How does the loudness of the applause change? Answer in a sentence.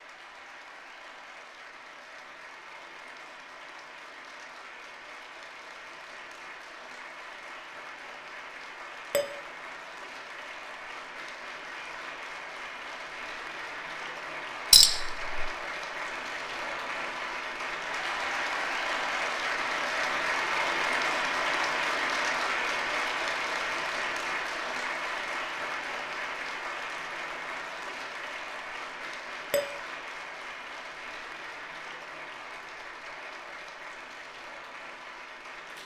The volume of the applause goes up, then down.